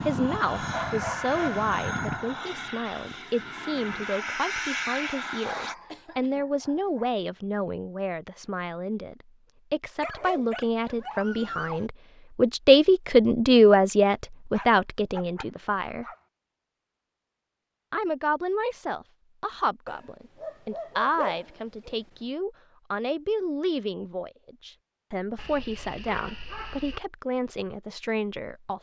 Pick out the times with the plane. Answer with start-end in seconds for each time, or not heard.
0.0-5.8.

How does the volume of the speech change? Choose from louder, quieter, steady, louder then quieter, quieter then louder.
louder then quieter.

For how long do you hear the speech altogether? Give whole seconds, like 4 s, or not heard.
27 s.